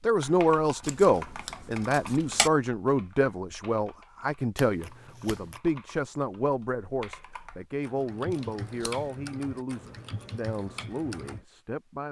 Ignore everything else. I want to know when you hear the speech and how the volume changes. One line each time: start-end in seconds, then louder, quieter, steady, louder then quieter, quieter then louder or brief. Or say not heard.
0.0-12.0 quieter.